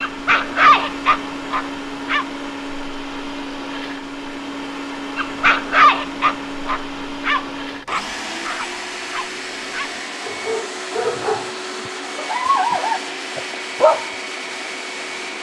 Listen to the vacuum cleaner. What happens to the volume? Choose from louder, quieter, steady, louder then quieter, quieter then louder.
steady.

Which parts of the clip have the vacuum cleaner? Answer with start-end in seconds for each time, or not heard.
0.0-15.3.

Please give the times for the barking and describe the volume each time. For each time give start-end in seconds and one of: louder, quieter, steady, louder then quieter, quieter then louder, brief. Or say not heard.
0.0-2.2 brief
5.2-14.1 quieter then louder.